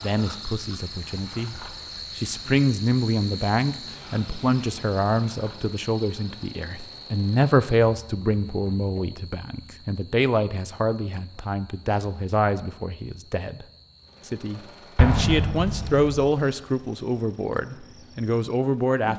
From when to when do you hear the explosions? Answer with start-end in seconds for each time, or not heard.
14.9-16.1.